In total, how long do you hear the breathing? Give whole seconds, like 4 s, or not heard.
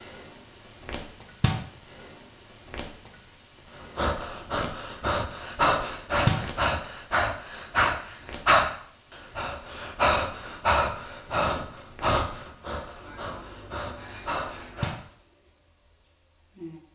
11 s.